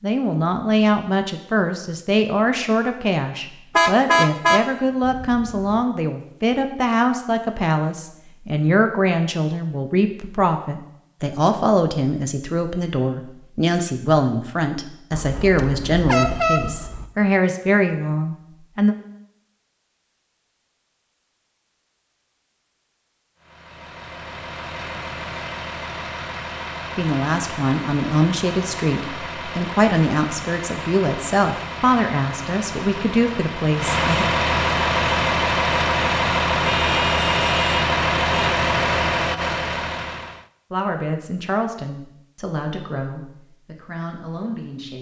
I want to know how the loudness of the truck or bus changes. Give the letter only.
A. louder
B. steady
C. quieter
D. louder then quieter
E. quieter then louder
A.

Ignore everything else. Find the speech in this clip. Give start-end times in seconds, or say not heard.
0.0-18.9, 26.9-34.2, 40.7-44.9.